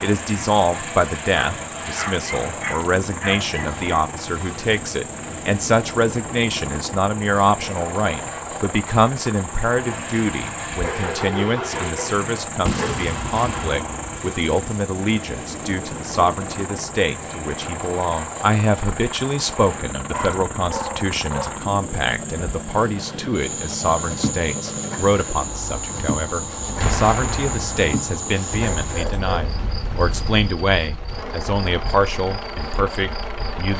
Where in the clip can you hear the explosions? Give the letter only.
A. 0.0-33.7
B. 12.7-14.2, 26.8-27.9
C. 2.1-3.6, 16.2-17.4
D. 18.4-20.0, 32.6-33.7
B.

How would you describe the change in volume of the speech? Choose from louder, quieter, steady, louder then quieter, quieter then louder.
steady.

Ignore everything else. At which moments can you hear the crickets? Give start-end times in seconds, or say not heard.
0.0-33.7.